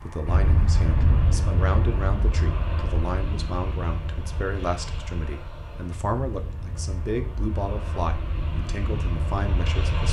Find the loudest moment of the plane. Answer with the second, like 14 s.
1 s.